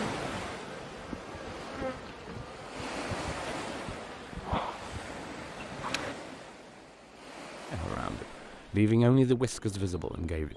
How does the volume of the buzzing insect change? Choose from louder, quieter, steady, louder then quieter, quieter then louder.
louder then quieter.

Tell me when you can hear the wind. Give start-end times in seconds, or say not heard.
0.0-10.5.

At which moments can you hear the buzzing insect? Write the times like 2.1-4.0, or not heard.
0.0-6.2.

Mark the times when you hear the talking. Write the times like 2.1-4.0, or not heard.
7.7-10.5.